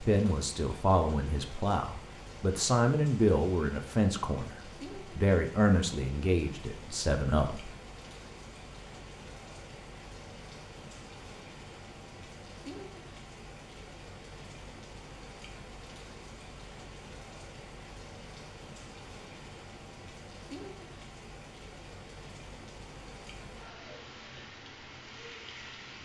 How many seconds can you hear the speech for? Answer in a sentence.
You can hear the speech for 8 seconds altogether.